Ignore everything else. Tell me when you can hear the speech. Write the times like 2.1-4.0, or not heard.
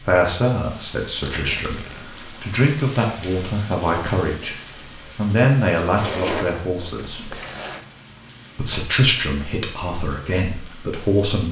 0.0-7.4, 8.6-11.4.